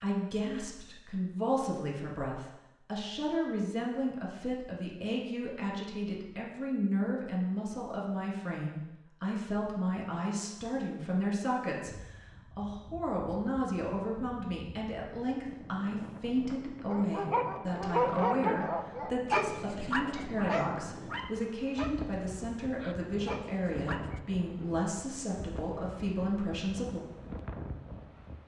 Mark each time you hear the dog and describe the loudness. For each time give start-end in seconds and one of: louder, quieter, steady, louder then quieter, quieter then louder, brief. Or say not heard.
16.9-24.2 quieter.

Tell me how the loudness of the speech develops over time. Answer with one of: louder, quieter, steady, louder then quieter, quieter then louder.
steady.